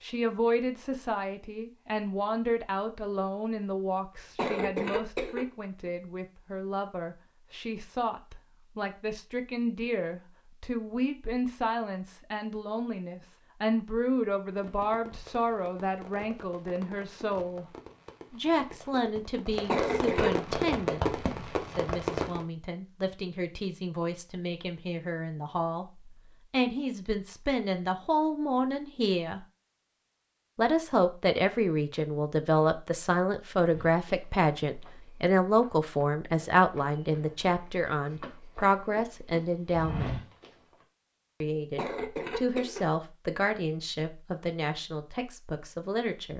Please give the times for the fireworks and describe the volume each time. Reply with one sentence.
You can hear the fireworks from 14.5 to 22.4 s, getting louder.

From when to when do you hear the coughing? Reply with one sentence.
The coughing can be heard from 4.3 to 5.5 s, from 19.6 to 20.4 s and from 41.8 to 42.9 s.